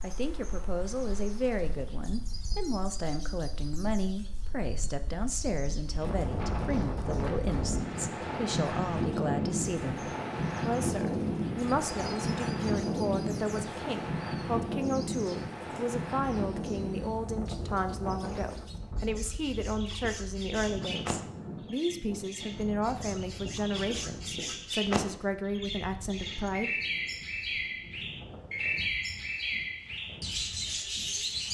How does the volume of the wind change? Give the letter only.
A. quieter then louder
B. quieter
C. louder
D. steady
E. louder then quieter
E.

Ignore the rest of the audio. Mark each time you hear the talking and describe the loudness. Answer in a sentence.
The talking can be heard from 0.0 to 26.7 s, at a steady volume.